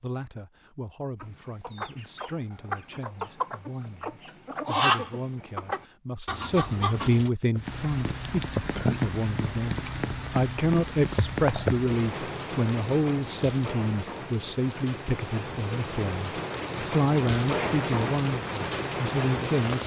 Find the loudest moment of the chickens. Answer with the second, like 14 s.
5 s.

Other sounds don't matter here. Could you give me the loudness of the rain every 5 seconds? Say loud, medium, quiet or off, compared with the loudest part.
off, loud, loud, loud.